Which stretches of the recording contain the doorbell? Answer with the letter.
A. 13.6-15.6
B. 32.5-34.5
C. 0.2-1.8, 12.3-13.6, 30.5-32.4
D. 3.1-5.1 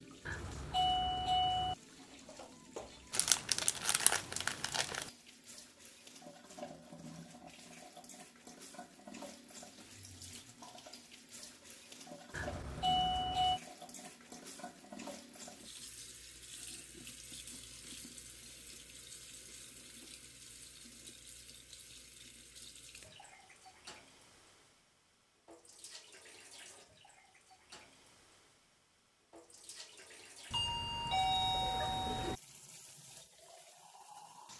C.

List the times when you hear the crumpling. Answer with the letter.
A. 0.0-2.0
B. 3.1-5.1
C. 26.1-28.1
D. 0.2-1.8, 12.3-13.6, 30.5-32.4
B.